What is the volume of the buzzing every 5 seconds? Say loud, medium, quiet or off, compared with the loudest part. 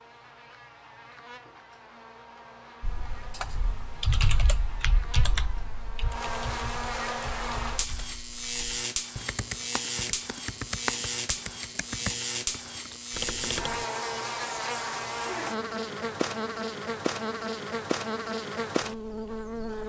quiet, loud, loud, loud.